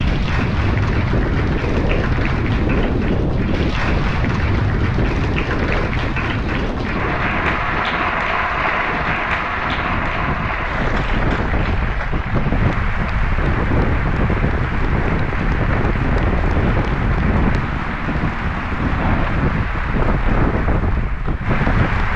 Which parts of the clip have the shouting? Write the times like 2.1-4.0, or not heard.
not heard.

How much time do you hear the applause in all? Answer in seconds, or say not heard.
22 s.